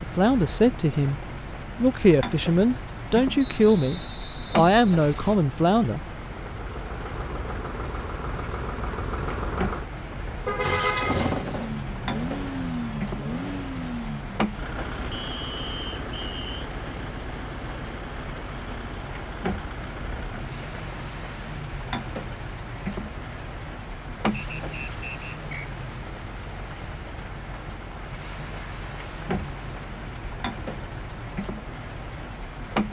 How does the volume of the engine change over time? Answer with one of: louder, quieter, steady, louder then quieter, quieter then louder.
quieter.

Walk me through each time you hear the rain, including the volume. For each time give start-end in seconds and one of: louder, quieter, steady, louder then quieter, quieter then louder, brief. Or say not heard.
0.0-32.8 steady.